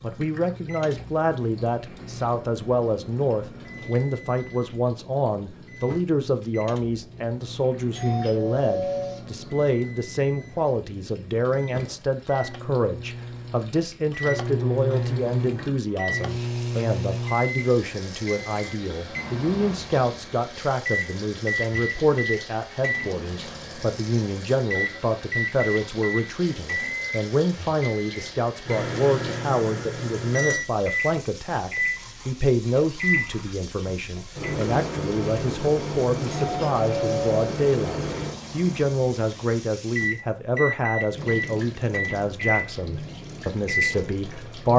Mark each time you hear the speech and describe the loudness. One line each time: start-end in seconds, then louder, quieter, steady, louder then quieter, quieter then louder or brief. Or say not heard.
0.0-44.7 steady.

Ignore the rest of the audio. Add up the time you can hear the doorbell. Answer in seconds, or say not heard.
2 s.